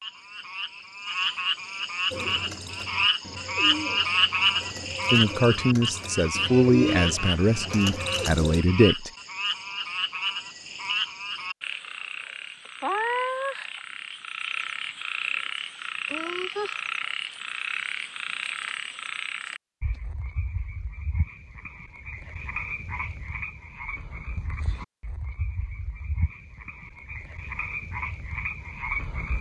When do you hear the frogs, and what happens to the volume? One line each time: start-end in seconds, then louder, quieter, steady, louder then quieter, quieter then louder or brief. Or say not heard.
0.0-29.3 quieter.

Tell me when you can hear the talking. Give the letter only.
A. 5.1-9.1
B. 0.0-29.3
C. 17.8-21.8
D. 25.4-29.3
A.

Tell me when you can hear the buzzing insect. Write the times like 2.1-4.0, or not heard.
not heard.